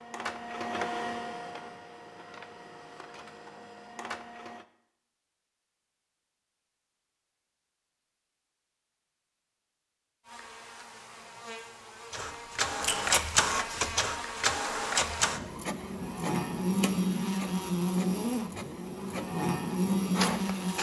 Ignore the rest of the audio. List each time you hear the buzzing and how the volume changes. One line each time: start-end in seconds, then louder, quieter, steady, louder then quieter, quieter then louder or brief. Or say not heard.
10.2-20.7 louder.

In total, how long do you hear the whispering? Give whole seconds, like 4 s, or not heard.
not heard.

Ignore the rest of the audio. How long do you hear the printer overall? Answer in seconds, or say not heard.
13 s.